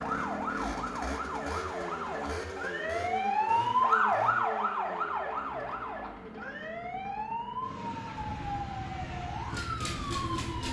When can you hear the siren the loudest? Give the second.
4 s.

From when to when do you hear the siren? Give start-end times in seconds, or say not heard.
0.0-10.6.